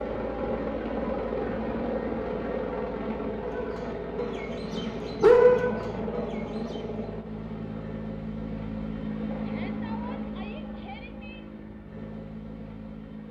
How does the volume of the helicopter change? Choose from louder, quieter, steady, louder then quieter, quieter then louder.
quieter.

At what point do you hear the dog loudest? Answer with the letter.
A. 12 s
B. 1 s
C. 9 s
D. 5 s
D.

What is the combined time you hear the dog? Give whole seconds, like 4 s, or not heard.
3 s.